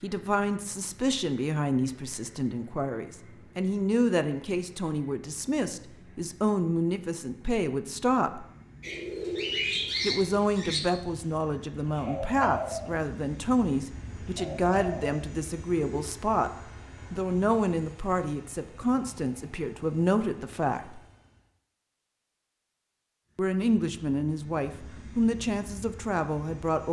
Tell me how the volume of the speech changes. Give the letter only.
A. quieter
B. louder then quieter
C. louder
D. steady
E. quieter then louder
D.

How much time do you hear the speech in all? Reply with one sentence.
The speech can be heard for 22 seconds in total.